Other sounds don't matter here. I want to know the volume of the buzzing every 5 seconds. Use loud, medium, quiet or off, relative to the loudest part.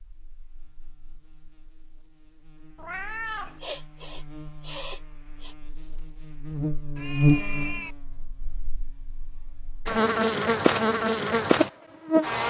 quiet, medium, loud.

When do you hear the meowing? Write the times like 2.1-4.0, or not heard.
2.8-3.6, 7.0-8.0.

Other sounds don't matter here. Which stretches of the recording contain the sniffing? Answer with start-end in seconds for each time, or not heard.
3.6-5.5.